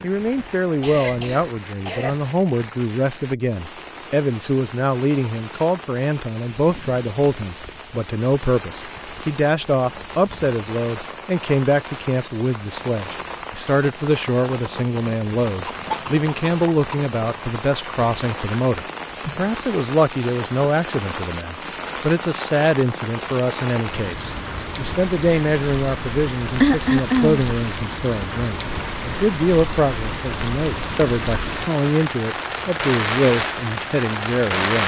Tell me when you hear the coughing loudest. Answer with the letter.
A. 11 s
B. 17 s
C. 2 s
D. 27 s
D.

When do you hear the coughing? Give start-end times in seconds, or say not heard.
0.8-2.1, 15.7-17.0, 26.6-27.4.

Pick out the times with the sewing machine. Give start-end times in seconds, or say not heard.
not heard.